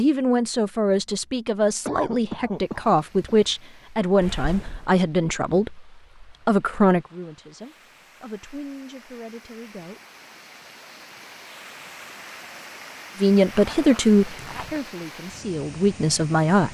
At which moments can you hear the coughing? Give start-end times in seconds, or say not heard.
1.9-3.4.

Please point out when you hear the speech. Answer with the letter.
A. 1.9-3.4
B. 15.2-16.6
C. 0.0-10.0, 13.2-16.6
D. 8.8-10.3
C.